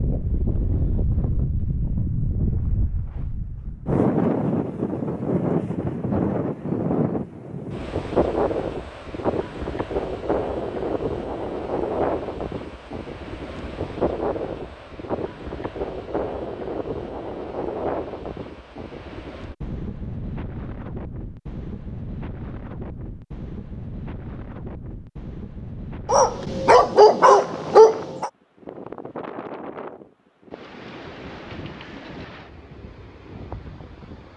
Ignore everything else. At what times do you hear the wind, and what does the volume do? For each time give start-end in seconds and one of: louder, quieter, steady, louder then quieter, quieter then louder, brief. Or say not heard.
0.0-34.3 quieter.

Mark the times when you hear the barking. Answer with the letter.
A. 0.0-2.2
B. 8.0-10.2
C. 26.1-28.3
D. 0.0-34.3
C.